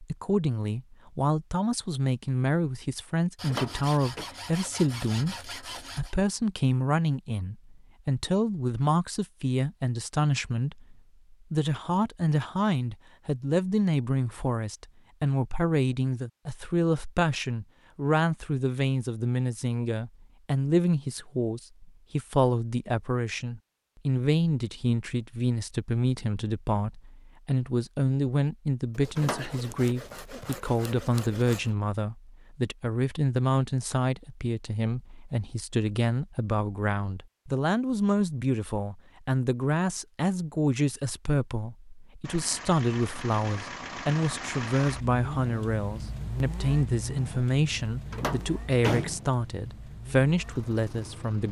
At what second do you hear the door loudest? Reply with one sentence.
The volume of the door peaks at 49 seconds.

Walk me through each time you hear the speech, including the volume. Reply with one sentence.
The speech can be heard from 0.0 to 51.4 s, at a steady volume.